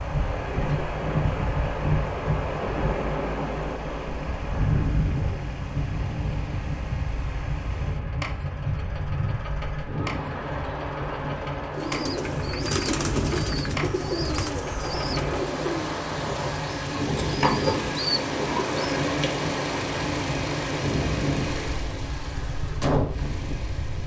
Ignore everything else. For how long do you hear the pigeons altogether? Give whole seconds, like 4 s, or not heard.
7 s.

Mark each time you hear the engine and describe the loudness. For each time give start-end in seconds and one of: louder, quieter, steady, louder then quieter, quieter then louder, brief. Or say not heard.
0.0-24.0 louder.